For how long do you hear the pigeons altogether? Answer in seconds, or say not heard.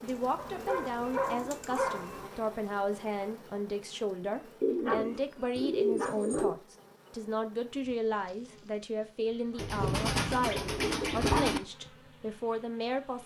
6 s.